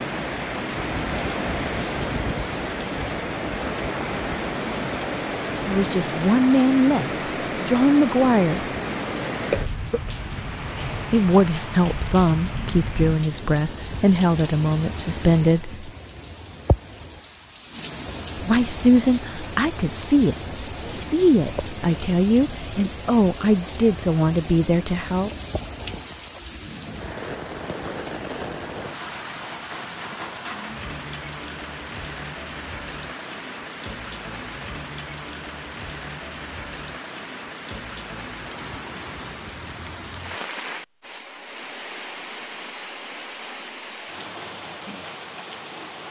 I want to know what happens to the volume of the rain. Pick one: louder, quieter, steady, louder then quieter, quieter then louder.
quieter.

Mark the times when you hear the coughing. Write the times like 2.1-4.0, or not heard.
9.5-10.1.